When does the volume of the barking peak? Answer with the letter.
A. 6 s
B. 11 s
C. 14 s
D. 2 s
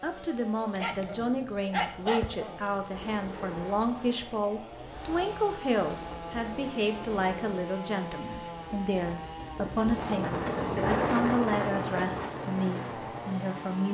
D.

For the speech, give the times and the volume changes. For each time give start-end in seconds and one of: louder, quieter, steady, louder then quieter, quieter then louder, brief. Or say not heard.
0.0-13.9 steady.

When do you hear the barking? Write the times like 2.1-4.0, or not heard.
0.7-2.9.